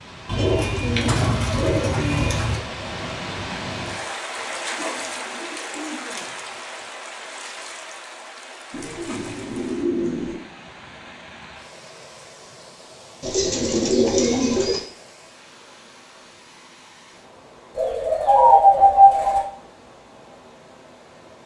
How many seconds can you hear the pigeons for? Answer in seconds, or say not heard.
9 s.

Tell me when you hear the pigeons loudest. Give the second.
19 s.